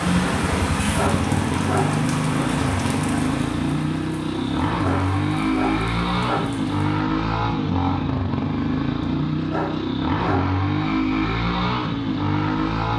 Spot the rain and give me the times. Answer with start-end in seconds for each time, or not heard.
0.0-6.8.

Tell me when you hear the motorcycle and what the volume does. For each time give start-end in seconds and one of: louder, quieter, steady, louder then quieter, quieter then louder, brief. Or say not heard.
0.0-12.9 steady.